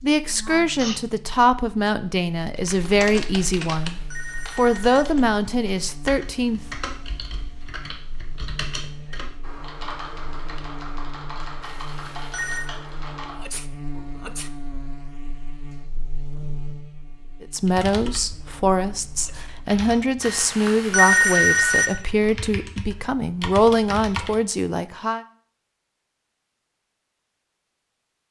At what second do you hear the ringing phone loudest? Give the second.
21 s.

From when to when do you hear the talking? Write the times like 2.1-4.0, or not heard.
0.0-6.6, 17.4-25.2.